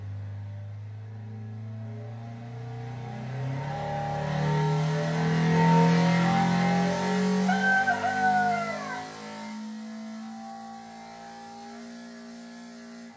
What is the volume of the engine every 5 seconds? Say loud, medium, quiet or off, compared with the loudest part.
medium, loud, quiet.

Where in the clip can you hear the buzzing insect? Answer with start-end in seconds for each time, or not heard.
not heard.